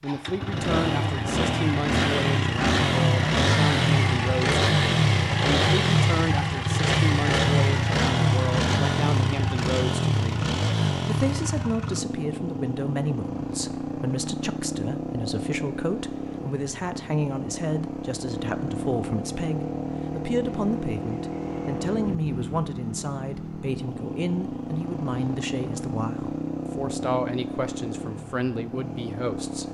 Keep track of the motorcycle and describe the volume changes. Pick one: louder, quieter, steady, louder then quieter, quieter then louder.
quieter.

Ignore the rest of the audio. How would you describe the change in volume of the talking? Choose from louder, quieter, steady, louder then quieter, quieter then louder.
steady.